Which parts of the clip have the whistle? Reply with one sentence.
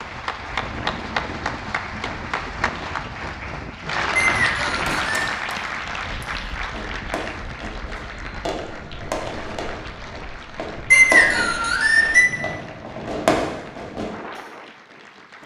You can hear the whistle from 4.2 to 5.2 s and from 10.9 to 12.3 s.